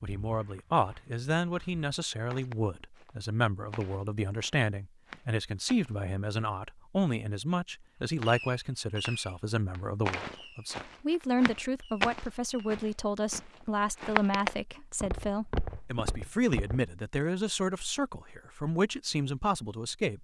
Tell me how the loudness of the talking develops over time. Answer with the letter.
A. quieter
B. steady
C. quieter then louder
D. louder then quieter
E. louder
B.